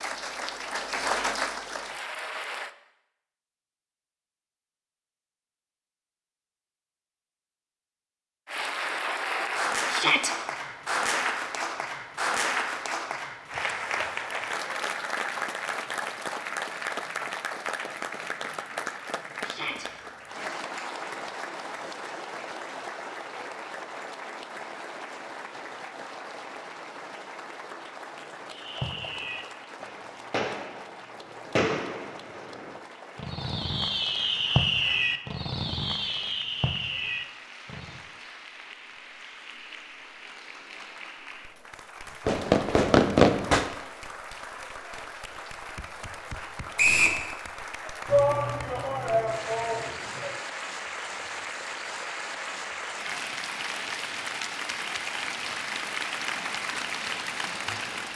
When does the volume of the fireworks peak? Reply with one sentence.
The loudest moment of the fireworks is at 43 seconds.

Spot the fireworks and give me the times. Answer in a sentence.
The fireworks can be heard from 28.5 to 38.0 s and from 42.2 to 43.8 s.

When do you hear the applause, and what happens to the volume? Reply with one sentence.
You can hear the applause briefly from 0.0 to 2.8 s; and from 8.4 to 58.1 s, getting quieter then louder.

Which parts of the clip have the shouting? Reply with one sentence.
You can hear the shouting from 9.9 to 10.3 s, from 19.4 to 19.9 s and from 48.0 to 50.4 s.